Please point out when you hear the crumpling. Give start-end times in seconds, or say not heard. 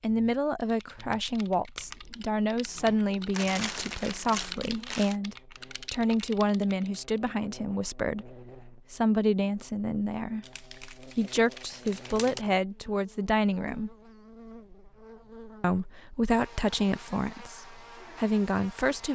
3.3-5.2, 10.4-12.4.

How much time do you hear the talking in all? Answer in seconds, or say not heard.
17 s.